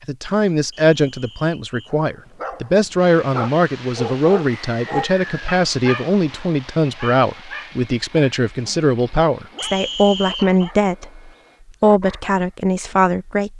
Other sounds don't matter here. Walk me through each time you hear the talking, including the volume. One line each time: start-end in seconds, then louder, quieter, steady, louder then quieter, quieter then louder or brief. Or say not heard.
0.1-13.5 steady.